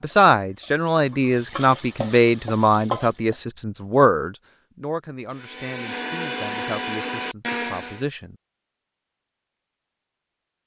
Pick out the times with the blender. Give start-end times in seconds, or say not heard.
5.3-8.1.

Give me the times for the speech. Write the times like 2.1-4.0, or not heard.
0.0-8.3.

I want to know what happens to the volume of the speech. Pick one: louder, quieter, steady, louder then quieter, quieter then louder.
quieter.